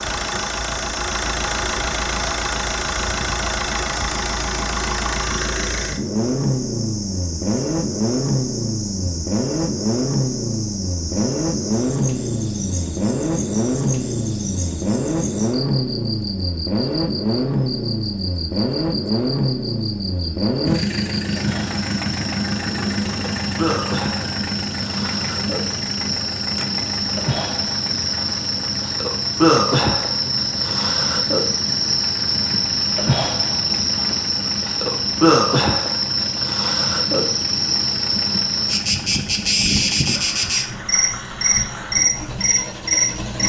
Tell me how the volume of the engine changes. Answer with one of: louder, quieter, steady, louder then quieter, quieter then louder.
quieter.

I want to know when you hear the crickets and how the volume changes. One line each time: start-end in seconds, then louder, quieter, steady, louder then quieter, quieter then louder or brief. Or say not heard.
0.0-43.4 louder.